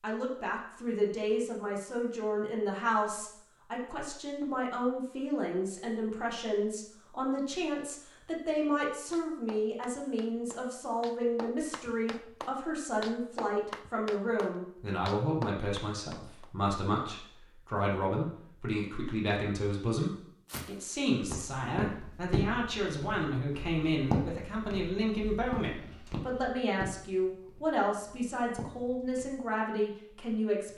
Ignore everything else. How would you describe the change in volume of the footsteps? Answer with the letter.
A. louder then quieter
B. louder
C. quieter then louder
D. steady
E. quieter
E.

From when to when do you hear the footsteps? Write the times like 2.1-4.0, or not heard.
20.5-29.4.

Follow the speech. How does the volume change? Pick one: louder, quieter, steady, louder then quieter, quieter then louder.
steady.